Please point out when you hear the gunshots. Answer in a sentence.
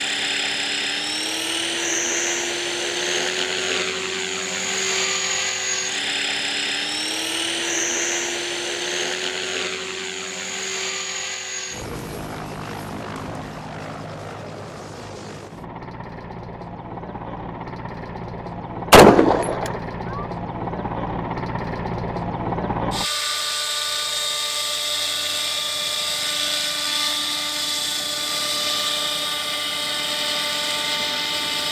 The gunshots can be heard from 18.9 to 20.2 s.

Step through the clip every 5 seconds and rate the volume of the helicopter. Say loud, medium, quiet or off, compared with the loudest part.
loud, loud, medium, medium, loud, loud, loud.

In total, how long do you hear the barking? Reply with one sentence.
You can't hear the barking here.